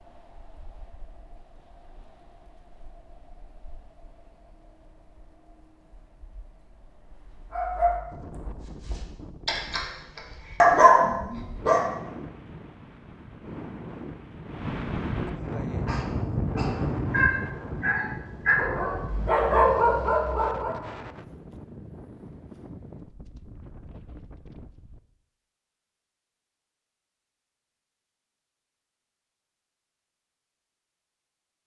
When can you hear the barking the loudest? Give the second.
11 s.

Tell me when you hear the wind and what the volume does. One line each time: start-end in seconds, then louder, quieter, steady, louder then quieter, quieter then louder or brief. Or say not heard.
0.0-25.0 louder then quieter.